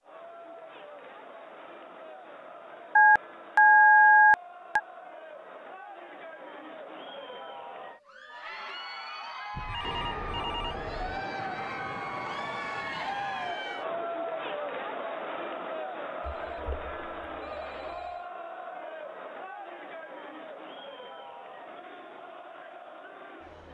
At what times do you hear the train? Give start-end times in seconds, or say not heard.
9.8-14.1.